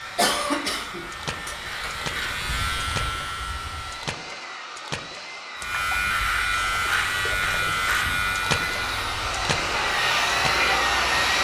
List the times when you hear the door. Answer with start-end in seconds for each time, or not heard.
not heard.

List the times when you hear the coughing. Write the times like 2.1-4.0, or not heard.
0.1-1.9.